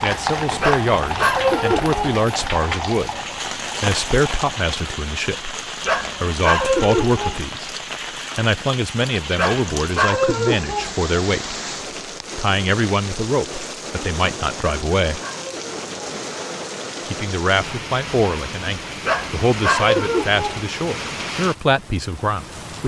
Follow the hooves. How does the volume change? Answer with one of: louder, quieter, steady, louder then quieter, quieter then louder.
quieter.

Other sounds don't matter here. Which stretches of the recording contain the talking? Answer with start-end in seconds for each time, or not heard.
0.0-3.1, 3.8-5.5, 6.2-7.7, 8.3-11.6, 12.3-15.2, 17.1-22.8.